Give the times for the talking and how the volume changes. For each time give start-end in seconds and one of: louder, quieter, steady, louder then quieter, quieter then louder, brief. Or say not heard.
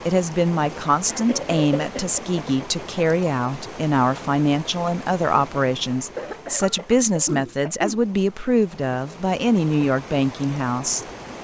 0.1-11.1 steady.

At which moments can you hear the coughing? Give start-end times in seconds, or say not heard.
1.1-2.8, 6.2-8.0.